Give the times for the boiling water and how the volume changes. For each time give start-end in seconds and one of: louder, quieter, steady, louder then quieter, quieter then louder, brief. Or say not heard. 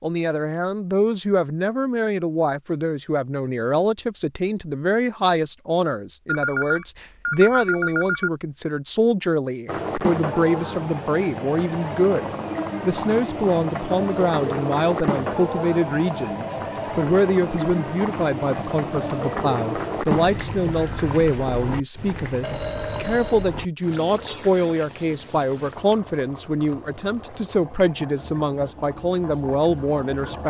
9.7-30.4 quieter.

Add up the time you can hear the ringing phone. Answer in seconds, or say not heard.
5 s.